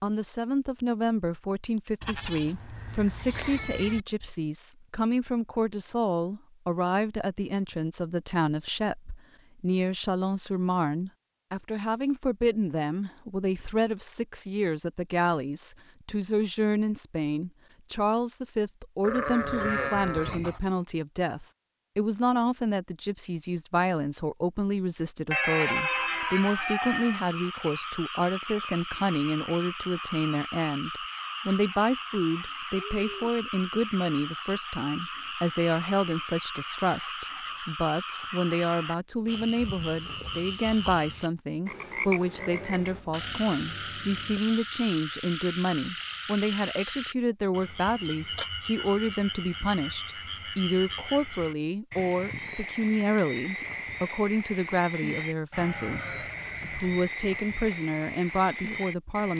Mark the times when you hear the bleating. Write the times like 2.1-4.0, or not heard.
2.0-4.0, 19.0-20.6, 25.3-27.2, 42.4-44.4, 55.5-57.1.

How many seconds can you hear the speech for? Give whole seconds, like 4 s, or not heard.
59 s.